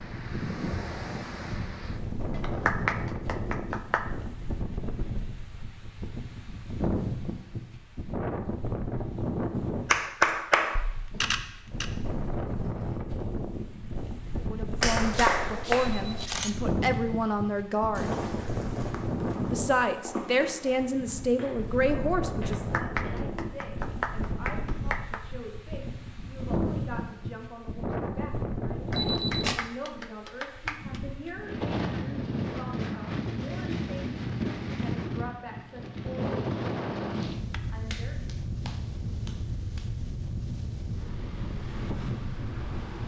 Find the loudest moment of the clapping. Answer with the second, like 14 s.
10 s.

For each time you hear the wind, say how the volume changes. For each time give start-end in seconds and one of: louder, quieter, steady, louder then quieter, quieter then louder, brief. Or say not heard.
0.0-43.0 steady.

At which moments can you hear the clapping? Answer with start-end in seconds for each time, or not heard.
2.3-4.0, 9.8-11.3, 14.8-16.3, 22.4-25.2, 28.9-31.0, 37.4-39.9.